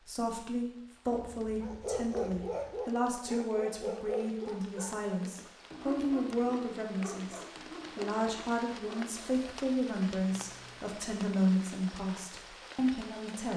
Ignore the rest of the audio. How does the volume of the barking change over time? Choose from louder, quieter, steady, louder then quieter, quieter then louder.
quieter.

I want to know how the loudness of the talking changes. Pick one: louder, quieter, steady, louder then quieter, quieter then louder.
steady.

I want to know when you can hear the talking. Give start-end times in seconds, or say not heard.
0.0-13.5.